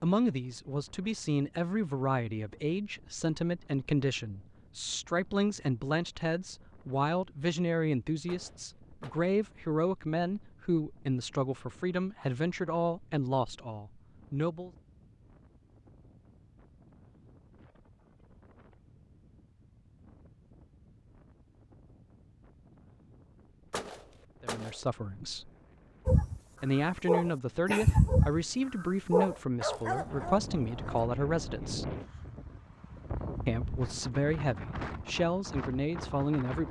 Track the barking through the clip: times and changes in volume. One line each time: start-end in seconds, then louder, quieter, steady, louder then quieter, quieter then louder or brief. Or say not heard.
26.1-31.1 quieter.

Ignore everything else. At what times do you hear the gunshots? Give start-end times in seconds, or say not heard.
8.2-9.3, 23.7-24.9.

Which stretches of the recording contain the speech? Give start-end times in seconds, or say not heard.
0.0-14.7, 24.4-25.5, 26.6-31.9, 33.5-36.6.